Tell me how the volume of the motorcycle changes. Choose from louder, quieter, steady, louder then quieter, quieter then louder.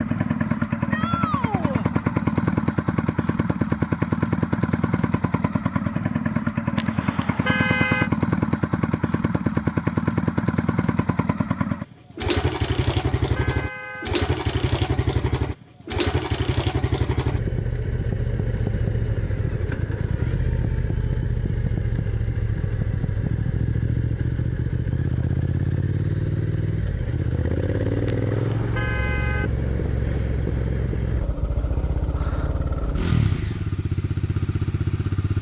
steady.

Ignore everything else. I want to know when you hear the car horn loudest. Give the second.
8 s.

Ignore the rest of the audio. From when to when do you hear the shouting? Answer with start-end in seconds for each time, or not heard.
0.9-1.9.